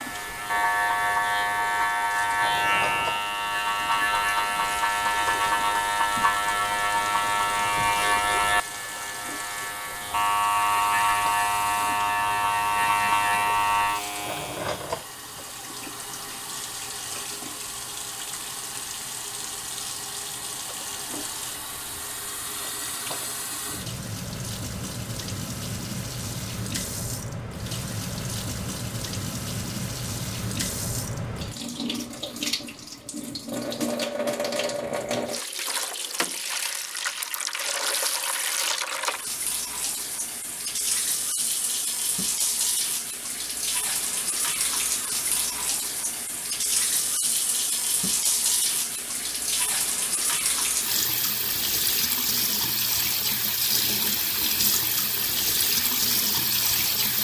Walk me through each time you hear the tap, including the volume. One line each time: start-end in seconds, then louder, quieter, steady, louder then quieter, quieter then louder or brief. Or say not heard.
0.0-57.1 louder.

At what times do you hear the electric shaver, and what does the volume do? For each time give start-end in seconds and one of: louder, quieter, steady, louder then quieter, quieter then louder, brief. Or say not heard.
0.0-14.8 steady.